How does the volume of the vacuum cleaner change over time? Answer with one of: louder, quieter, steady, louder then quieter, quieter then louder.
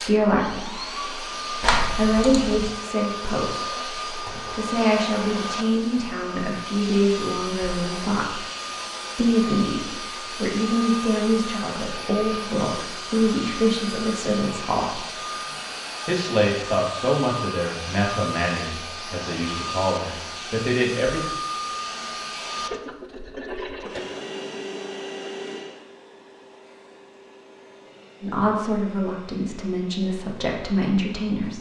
quieter.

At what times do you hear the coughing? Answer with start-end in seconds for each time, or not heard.
1.6-2.7.